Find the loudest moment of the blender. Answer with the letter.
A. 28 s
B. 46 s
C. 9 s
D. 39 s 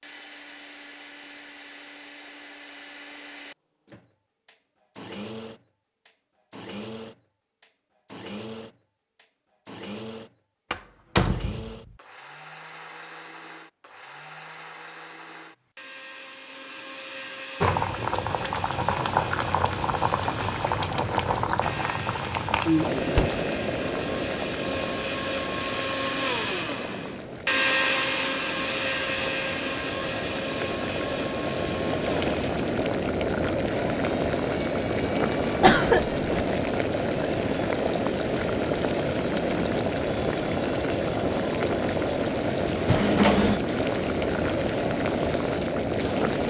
A.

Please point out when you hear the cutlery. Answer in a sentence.
The cutlery can't be heard in this clip.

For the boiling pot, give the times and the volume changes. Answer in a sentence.
The boiling pot can be heard from 17.6 to 46.4 s, getting quieter then louder.